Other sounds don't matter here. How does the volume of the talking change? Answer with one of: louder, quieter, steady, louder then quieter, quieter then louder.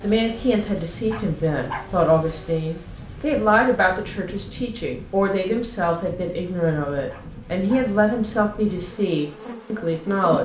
steady.